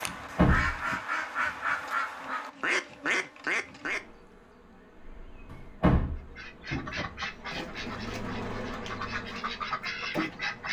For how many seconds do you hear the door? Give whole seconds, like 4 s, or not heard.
2 s.